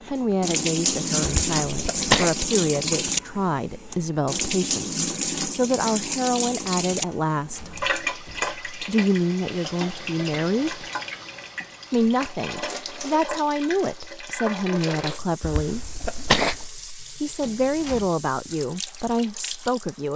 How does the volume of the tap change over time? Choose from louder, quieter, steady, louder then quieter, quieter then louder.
quieter.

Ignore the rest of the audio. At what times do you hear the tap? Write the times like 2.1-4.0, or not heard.
0.0-20.1.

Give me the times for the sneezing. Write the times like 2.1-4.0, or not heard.
1.2-2.3, 15.4-16.7.